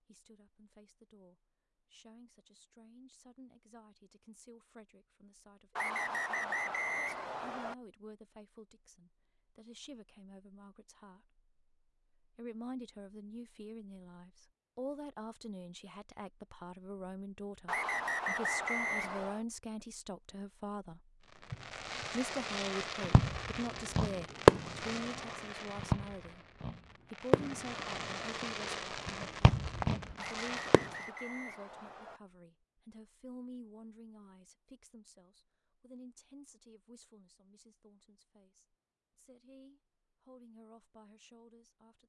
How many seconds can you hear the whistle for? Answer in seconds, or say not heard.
6 s.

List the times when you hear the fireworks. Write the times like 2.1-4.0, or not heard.
21.5-30.9.